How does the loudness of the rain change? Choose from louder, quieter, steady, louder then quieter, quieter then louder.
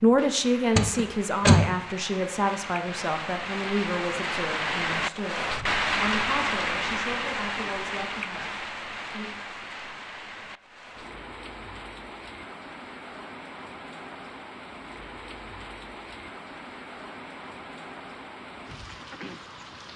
louder then quieter.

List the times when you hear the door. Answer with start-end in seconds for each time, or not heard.
0.8-1.7.